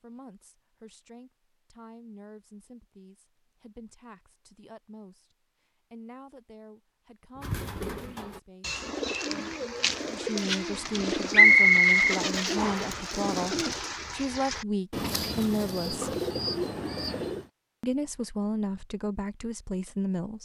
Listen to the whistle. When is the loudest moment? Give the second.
12 s.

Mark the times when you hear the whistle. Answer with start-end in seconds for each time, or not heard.
11.3-12.9.